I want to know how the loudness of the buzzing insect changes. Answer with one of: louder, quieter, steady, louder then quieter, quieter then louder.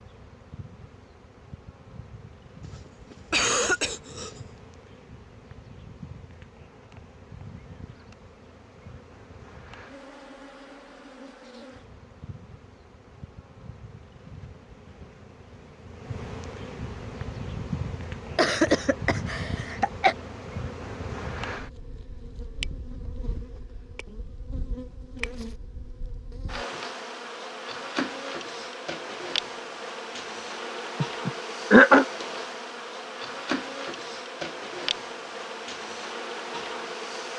louder.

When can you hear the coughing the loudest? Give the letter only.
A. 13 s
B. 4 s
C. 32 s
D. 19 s
C.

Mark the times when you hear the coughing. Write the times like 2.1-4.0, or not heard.
2.6-4.4, 18.4-20.1, 31.0-32.0.